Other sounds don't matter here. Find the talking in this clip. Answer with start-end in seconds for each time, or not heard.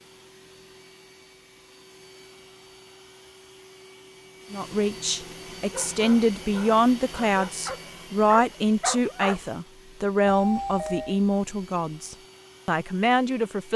4.5-13.7.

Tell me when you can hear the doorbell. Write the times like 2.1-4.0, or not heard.
10.2-11.2.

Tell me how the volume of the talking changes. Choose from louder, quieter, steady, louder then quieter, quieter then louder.
steady.